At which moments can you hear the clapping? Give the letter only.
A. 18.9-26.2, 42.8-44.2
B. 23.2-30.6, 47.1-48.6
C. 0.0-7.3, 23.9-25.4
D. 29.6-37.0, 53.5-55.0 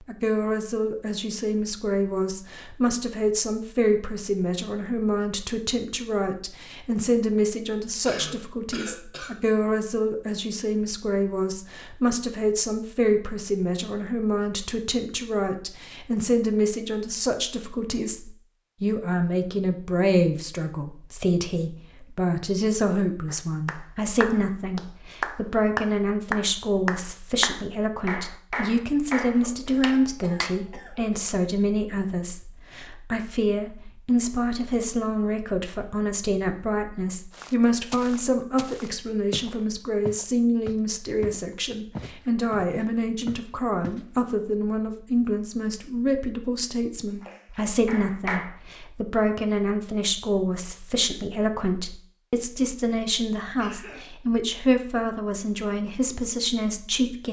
B.